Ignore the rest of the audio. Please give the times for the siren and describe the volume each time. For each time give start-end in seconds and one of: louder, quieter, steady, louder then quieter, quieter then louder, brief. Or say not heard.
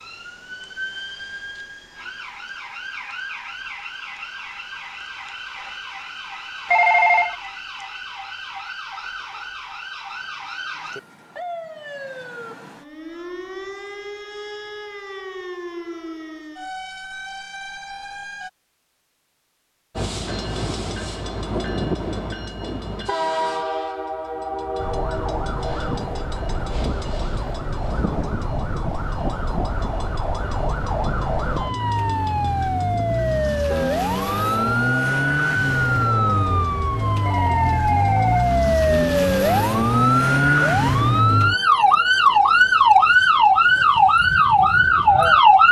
0.0-18.5 steady
24.8-45.6 louder.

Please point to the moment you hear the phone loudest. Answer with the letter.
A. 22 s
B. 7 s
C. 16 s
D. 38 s
B.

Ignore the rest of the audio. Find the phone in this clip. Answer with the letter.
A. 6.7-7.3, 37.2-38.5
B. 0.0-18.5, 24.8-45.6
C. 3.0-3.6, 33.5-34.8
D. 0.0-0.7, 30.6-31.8
A.